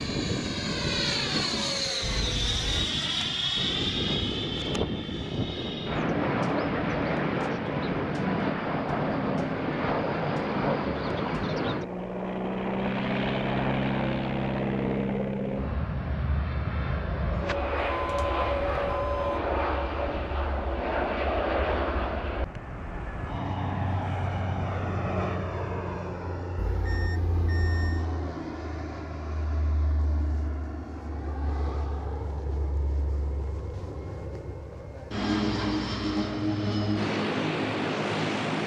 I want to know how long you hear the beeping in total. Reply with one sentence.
You can hear the beeping for 4 seconds altogether.